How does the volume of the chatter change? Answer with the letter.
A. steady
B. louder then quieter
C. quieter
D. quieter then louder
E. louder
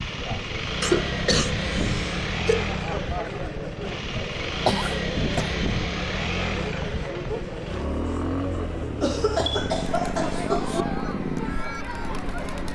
A.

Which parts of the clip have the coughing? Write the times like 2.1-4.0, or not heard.
0.8-2.6, 4.7-5.5, 9.0-10.8.